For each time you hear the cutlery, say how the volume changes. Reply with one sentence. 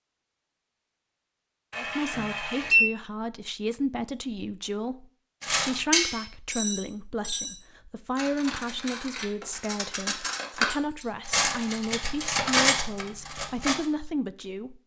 The cutlery can be heard from 5.4 to 13.8 s, getting quieter then louder.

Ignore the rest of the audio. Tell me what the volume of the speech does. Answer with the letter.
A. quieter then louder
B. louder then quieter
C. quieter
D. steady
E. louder
D.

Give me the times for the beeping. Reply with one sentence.
You can hear the beeping from 1.7 to 2.9 s.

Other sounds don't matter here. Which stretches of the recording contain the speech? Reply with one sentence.
You can hear the speech from 1.8 to 14.8 s.